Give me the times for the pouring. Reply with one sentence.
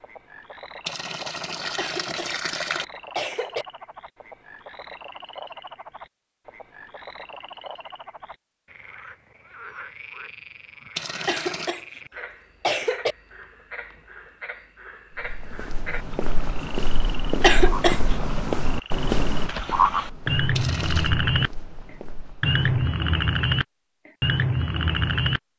You can hear the pouring from 0.8 to 2.9 s, from 10.9 to 11.8 s and from 20.6 to 21.1 s.